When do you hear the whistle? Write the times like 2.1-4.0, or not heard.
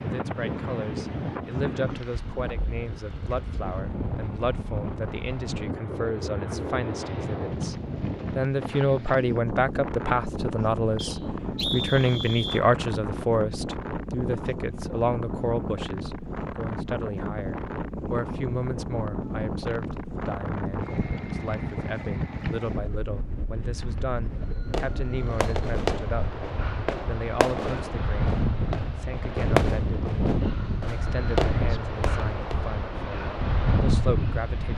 10.9-12.6.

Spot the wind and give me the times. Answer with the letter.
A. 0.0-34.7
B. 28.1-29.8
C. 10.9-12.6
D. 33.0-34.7
A.